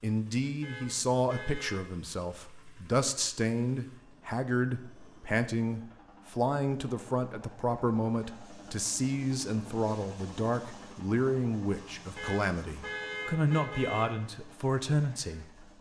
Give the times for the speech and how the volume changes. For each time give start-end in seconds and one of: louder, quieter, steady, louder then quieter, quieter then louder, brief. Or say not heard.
0.0-15.7 steady.